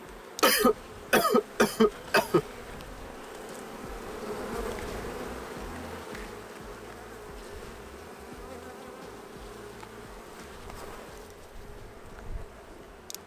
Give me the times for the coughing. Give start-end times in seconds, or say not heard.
0.4-2.4.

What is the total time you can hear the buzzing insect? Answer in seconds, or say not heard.
13 s.